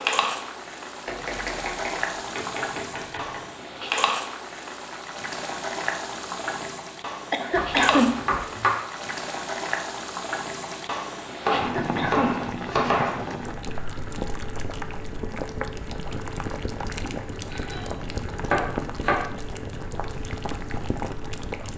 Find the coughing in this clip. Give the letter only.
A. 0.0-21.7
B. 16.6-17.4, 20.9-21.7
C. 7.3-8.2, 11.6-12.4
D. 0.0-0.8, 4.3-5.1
C.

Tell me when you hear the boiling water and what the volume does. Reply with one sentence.
You can hear the boiling water from 0.0 to 21.7 s, at a steady volume.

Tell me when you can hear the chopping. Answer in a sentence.
You can hear the chopping from 1.1 to 3.4 s, from 7.5 to 8.7 s, from 11.4 to 13.2 s and from 17.0 to 19.2 s.